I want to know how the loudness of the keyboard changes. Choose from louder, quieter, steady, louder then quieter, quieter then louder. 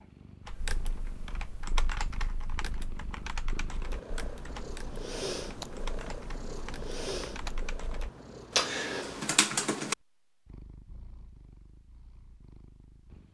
quieter then louder.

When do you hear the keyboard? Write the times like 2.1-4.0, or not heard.
0.5-9.9.